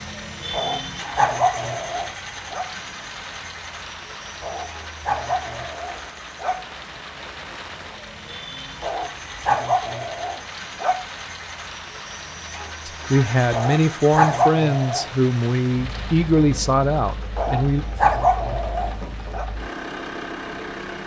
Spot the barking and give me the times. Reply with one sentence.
You can hear the barking from 0.5 to 2.6 s, from 4.4 to 6.6 s, from 8.8 to 11.0 s, from 13.5 to 15.1 s and from 17.4 to 19.4 s.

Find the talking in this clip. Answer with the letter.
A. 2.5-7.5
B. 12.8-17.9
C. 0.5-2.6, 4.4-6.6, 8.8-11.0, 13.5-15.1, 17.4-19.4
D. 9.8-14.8
B.